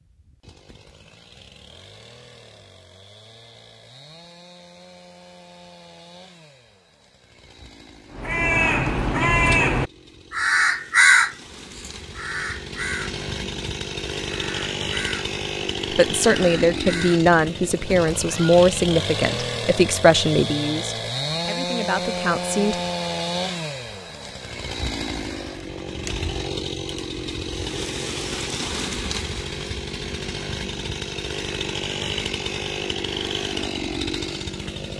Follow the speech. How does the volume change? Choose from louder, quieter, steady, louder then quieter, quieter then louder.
quieter.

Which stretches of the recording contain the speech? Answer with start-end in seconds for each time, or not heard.
15.9-22.8.